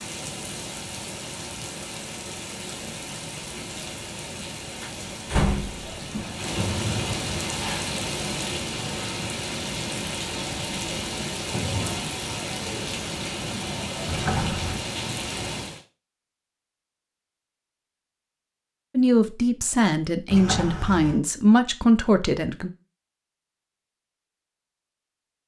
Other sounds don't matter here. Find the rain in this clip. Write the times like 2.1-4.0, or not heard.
0.0-15.8.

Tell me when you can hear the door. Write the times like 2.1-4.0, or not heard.
4.8-6.2, 14.1-14.8, 20.3-21.2.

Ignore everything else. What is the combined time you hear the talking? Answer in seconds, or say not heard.
4 s.